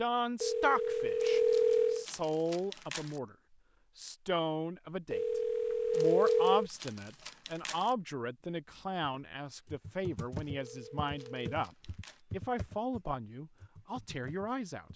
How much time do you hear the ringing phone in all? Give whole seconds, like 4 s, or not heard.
4 s.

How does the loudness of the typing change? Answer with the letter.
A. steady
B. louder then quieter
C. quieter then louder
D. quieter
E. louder
D.